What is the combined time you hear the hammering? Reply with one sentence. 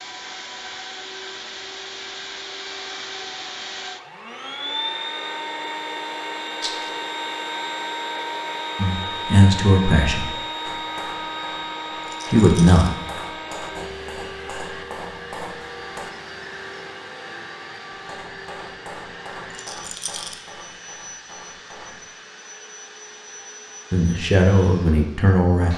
The hammering can be heard for 10 seconds in total.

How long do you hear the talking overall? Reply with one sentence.
You can hear the talking for 4 seconds altogether.